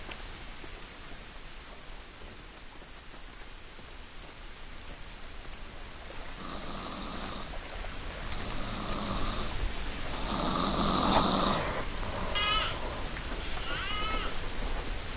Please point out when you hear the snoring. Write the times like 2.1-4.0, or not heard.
6.3-14.4.